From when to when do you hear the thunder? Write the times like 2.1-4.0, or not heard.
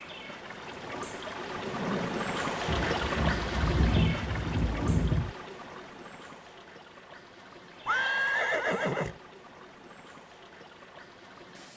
2.6-5.3.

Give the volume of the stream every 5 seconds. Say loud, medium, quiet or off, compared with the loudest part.
loud, quiet, quiet.